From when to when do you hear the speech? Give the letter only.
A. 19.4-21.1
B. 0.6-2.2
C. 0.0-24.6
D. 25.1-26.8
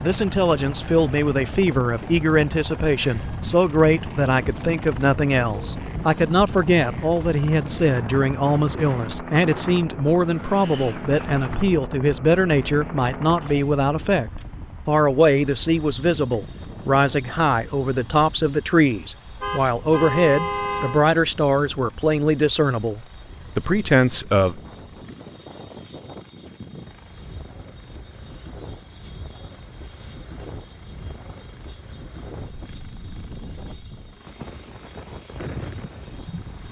C.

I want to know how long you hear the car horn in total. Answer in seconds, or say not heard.
2 s.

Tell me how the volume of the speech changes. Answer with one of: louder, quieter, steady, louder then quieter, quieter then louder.
steady.